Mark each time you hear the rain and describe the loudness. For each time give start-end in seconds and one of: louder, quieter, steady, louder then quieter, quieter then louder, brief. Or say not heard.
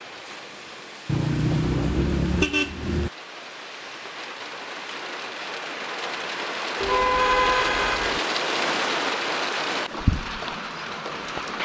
0.0-11.6 louder.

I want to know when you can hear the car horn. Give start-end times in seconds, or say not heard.
1.1-3.1, 6.8-8.2.